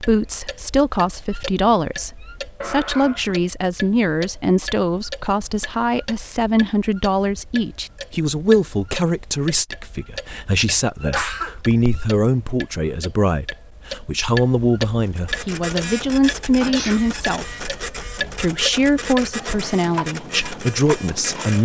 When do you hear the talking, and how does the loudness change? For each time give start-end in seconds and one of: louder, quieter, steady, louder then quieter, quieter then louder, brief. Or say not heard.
0.0-21.5 steady.